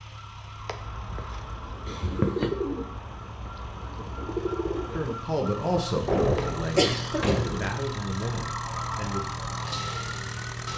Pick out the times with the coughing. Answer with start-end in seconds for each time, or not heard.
1.9-2.5, 6.8-7.5.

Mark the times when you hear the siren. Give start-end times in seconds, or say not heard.
0.0-10.7.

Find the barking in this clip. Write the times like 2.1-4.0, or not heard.
not heard.